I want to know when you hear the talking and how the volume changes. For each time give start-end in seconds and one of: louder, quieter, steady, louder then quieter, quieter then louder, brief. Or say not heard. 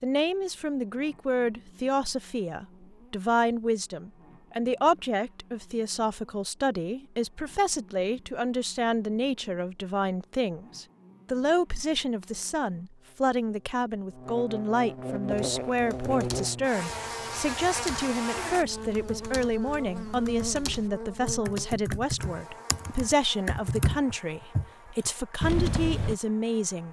0.0-26.8 steady.